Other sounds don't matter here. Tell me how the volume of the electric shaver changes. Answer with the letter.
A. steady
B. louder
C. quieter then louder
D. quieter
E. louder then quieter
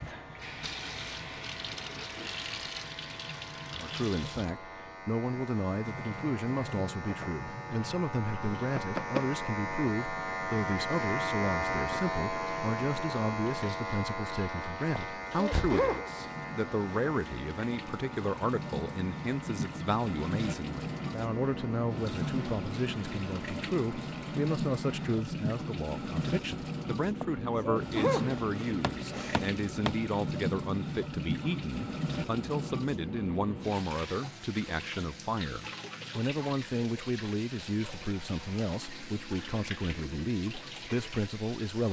E.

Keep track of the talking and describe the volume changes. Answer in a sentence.
The loudness of the talking stays about the same.